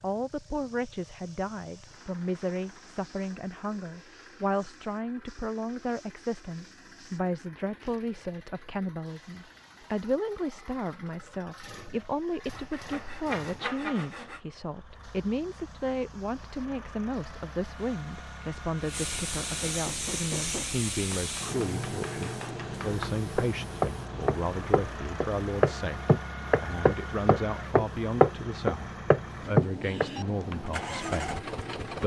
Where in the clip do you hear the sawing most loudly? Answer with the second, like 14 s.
14 s.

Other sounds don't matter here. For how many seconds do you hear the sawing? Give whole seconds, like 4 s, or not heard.
2 s.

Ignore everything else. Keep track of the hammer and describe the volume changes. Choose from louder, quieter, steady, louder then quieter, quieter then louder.
louder.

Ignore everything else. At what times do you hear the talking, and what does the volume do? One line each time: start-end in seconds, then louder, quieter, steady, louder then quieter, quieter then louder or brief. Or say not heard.
0.0-32.0 steady.